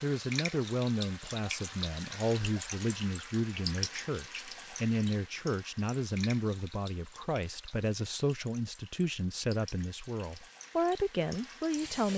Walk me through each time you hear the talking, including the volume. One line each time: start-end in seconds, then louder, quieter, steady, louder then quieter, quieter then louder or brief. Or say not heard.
0.0-12.1 steady.